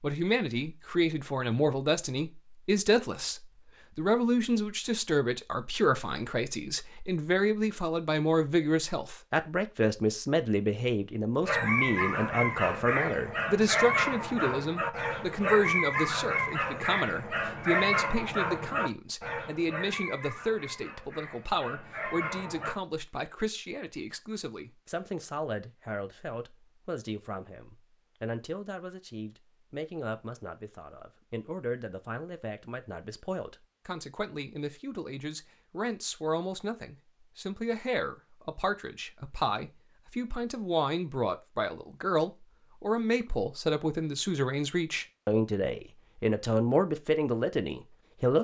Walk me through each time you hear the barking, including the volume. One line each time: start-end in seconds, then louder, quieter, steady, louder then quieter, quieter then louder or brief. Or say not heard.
11.4-22.8 quieter.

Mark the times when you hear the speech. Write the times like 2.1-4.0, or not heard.
0.0-48.3.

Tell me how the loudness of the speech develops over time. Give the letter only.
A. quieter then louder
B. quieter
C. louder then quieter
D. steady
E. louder
A.